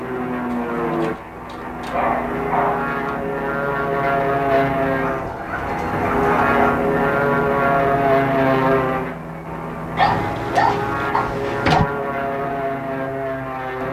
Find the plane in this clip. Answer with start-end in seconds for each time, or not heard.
0.0-13.8.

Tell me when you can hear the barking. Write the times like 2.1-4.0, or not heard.
0.5-3.1, 5.0-6.6, 9.9-11.8.